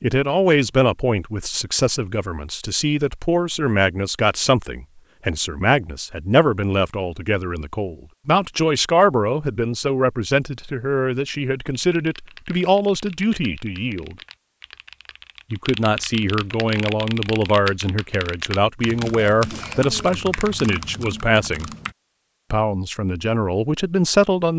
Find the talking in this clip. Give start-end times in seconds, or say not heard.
0.0-14.2, 15.5-21.7, 22.5-24.5.